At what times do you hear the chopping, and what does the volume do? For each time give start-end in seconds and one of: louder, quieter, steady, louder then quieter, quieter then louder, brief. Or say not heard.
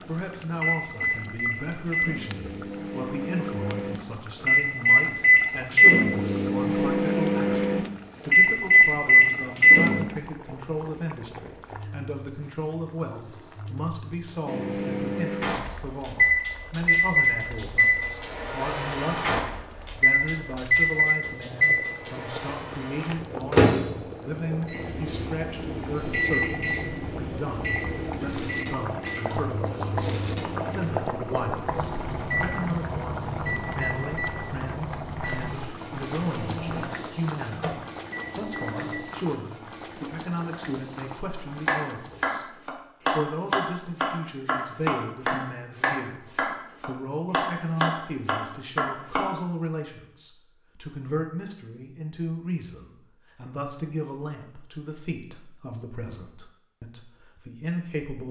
41.6-49.3 steady.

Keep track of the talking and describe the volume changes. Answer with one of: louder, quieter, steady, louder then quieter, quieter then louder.
steady.